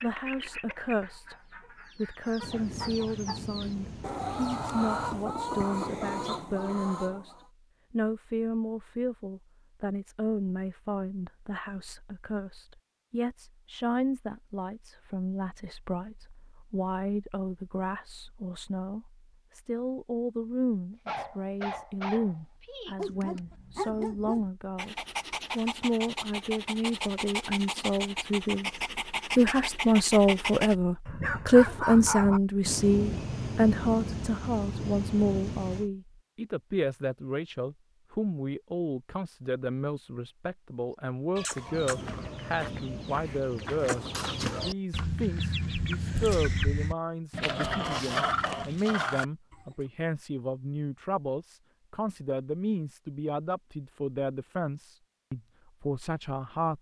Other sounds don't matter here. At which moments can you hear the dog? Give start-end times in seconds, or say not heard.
21.1-32.4.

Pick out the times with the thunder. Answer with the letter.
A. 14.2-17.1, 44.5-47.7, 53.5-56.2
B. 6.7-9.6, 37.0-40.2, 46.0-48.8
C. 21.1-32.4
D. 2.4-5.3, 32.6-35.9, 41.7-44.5
D.